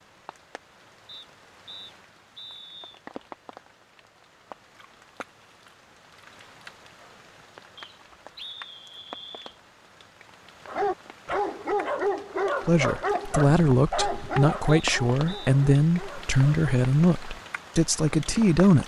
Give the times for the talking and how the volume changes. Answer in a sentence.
You can hear the talking from 12.7 to 18.8 s, at a steady volume.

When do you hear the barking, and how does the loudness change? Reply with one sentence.
You can hear the barking from 10.7 to 16.6 s, getting quieter.